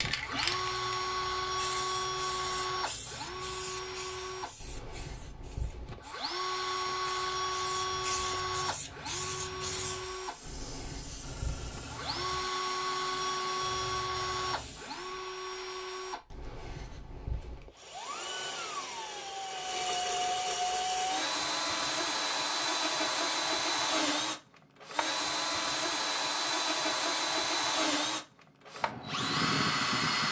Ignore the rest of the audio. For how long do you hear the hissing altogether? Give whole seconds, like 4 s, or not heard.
15 s.